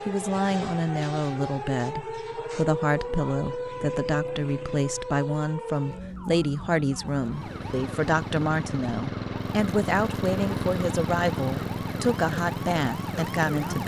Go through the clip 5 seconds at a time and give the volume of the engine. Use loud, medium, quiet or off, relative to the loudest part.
off, loud, loud.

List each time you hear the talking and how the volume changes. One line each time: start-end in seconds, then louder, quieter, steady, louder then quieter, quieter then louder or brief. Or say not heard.
0.1-13.8 steady.